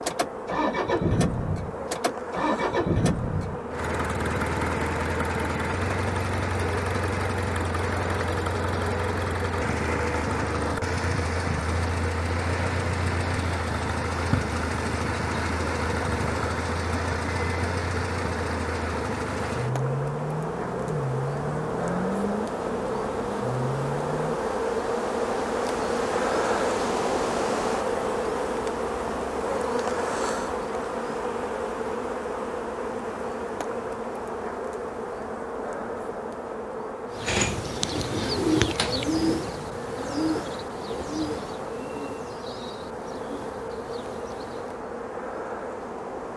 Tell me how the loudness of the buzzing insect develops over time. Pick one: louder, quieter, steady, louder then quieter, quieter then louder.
louder then quieter.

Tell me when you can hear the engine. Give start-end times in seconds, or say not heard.
0.0-24.4.